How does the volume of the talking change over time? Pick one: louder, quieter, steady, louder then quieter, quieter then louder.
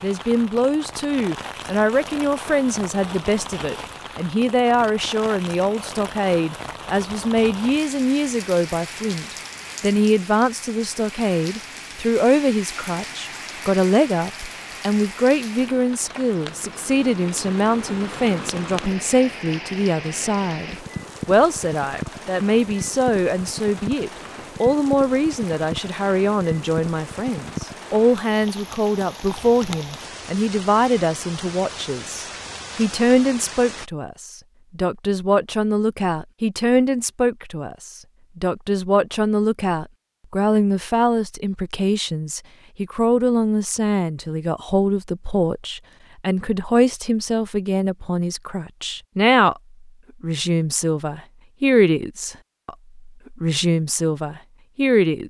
steady.